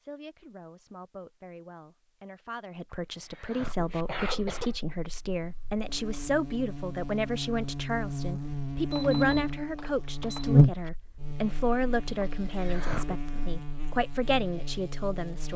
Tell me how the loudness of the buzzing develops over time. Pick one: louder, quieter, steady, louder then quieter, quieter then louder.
louder then quieter.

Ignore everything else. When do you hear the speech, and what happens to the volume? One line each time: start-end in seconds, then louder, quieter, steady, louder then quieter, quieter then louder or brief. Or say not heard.
0.0-15.5 louder.